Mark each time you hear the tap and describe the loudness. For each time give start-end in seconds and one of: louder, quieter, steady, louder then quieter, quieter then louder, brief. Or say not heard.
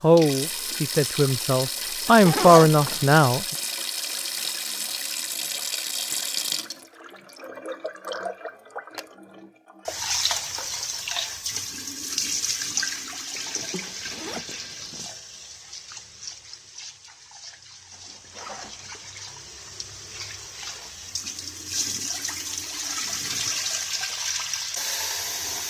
0.0-25.6 quieter then louder.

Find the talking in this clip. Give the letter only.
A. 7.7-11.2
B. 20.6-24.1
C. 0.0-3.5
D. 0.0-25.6
C.